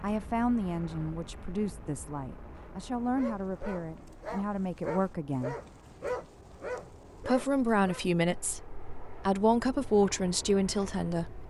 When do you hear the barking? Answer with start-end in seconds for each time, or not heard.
3.1-8.1.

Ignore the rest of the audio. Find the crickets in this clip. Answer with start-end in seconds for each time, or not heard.
not heard.